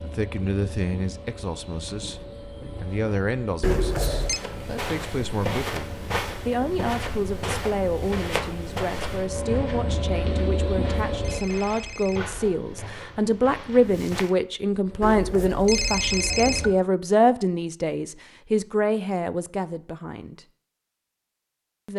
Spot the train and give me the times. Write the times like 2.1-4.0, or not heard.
0.0-11.4, 14.8-16.8.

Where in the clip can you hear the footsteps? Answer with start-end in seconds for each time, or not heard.
4.2-14.3.